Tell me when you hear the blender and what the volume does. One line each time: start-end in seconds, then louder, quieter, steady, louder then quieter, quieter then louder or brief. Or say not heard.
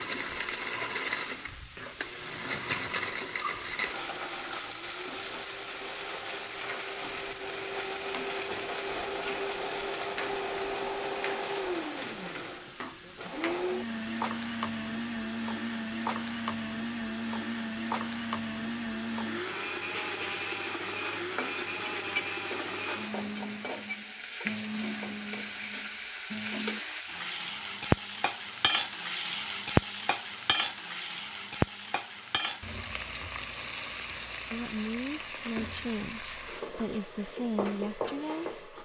0.0-27.1 steady.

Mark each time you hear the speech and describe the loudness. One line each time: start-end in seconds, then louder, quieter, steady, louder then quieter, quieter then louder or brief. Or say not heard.
34.5-38.8 steady.